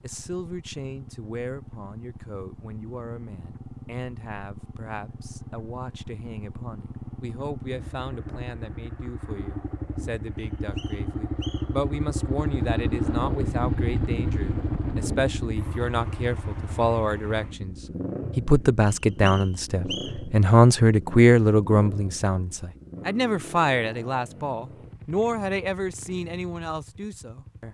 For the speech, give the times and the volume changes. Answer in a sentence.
You can hear the speech from 0.0 to 17.8 s, getting louder; and from 18.4 to 27.6 s, getting louder then quieter.